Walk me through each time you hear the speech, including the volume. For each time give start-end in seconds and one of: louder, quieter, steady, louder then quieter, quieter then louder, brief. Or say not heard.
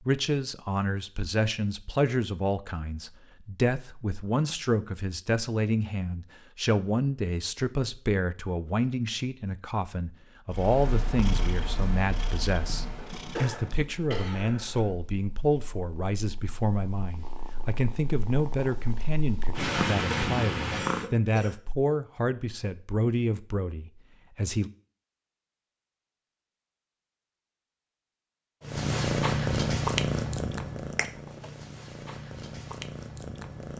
0.1-24.7 steady.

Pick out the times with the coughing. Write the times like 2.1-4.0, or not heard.
12.9-14.9, 19.6-21.6.